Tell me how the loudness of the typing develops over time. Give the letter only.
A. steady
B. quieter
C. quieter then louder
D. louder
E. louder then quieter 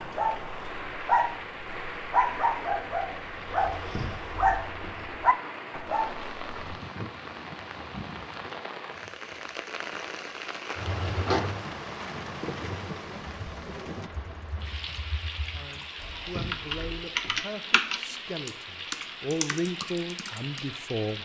E.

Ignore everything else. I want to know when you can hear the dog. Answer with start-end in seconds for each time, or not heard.
0.0-6.6.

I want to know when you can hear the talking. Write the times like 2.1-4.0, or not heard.
15.5-21.2.